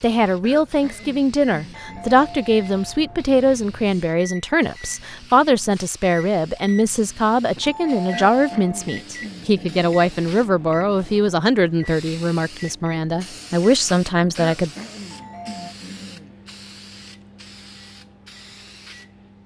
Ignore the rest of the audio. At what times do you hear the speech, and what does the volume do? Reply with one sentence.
You can hear the speech from 0.0 to 14.7 s, at a steady volume.